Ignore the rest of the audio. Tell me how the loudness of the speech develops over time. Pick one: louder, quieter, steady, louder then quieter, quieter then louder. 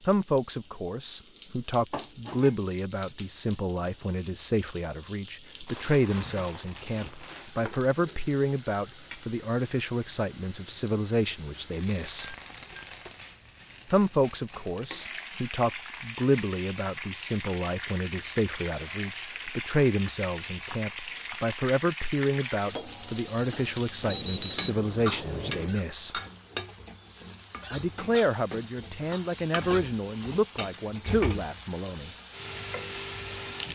steady.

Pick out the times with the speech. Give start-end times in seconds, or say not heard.
0.1-12.3, 13.9-26.2, 27.7-32.1.